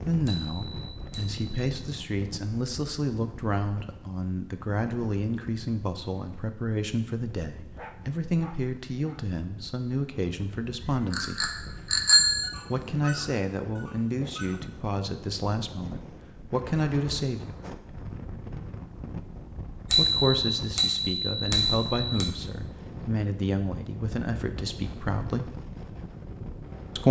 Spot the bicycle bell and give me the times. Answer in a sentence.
The bicycle bell can be heard from 0.2 to 1.4 s, from 11.1 to 12.5 s and from 19.9 to 22.3 s.